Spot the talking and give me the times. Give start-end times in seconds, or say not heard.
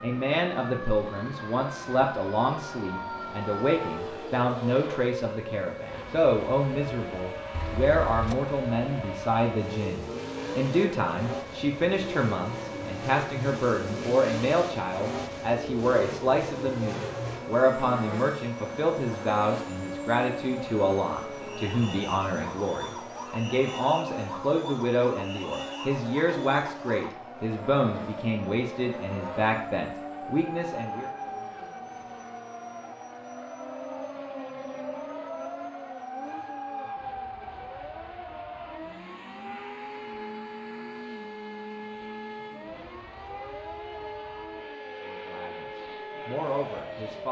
0.0-31.1, 44.9-47.2.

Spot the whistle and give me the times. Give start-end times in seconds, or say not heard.
not heard.